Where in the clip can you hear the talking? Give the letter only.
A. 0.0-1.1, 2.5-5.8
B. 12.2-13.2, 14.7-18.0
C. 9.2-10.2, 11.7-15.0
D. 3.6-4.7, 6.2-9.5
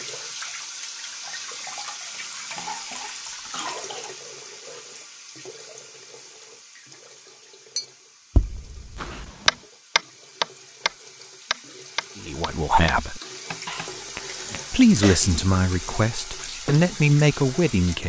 B.